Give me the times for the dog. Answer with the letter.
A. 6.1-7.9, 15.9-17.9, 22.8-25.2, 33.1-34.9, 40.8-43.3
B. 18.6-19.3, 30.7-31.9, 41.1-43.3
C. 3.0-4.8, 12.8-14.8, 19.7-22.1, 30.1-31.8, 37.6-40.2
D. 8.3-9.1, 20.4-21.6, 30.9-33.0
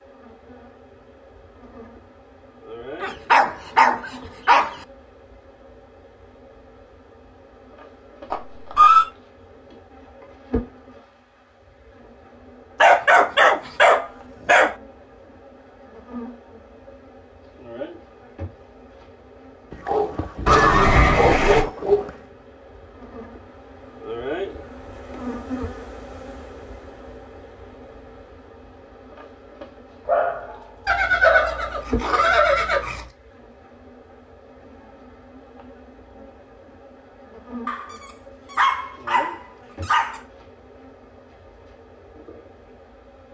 C.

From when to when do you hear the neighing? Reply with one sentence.
You can hear the neighing from 8.3 to 9.1 s, from 20.4 to 21.6 s and from 30.9 to 33.0 s.